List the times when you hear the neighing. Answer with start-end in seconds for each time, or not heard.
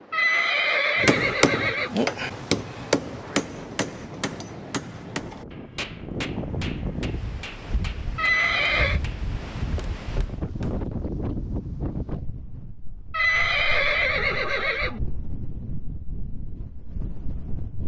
0.1-2.0, 8.2-9.0, 13.1-15.0.